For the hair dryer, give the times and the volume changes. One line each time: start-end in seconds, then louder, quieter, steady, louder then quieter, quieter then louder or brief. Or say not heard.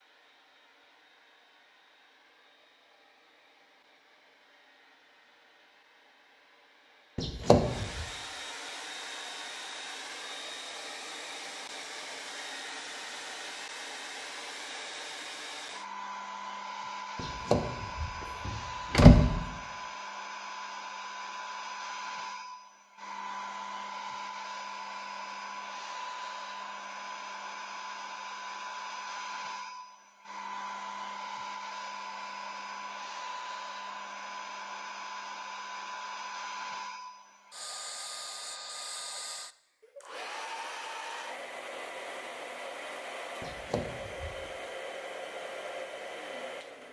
0.0-46.8 louder.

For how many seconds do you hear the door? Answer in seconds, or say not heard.
4 s.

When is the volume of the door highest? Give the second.
19 s.